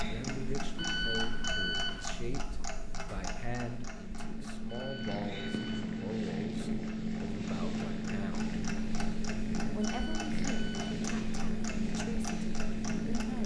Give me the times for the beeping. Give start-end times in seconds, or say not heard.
0.8-2.0, 4.7-6.0, 9.8-11.0.